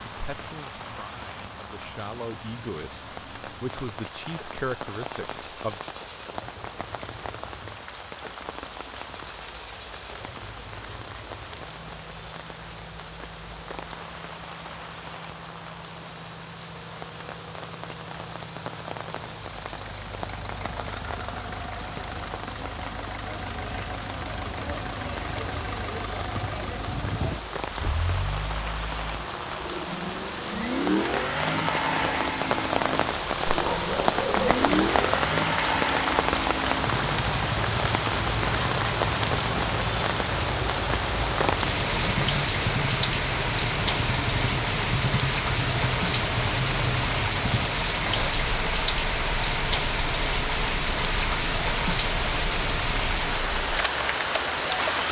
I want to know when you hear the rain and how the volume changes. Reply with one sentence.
You can hear the rain from 0.0 to 55.0 s, getting louder.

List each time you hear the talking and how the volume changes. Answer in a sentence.
The talking can be heard from 0.1 to 5.8 s, getting louder.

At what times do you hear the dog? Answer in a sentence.
The dog can be heard from 33.5 to 34.7 s.